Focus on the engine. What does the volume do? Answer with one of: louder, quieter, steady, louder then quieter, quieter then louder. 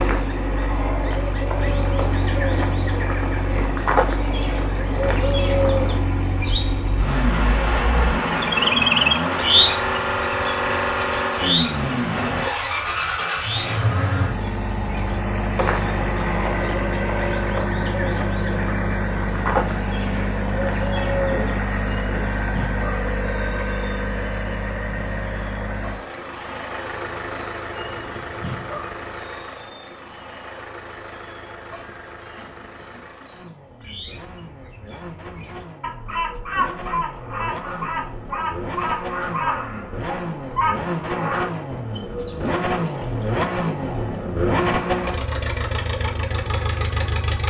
quieter then louder.